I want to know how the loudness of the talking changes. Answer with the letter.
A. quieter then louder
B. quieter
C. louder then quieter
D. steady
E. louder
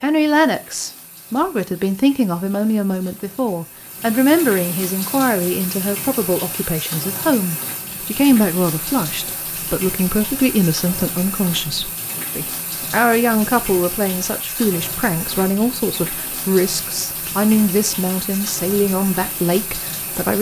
D.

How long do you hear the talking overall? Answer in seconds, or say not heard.
20 s.